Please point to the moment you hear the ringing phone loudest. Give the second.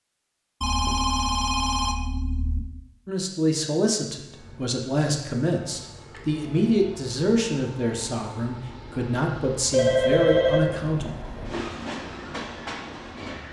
10 s.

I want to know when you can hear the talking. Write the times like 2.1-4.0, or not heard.
3.0-11.1.